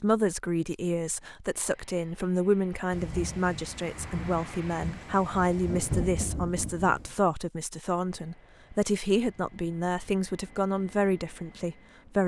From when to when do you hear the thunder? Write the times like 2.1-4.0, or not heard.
2.9-7.2.